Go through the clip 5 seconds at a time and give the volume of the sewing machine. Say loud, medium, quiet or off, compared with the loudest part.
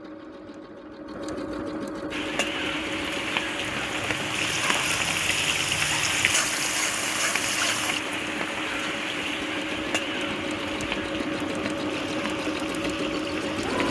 medium, medium, loud.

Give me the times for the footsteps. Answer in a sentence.
The footsteps can't be heard in this clip.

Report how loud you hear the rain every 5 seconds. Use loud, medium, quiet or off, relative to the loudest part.
loud, loud, medium.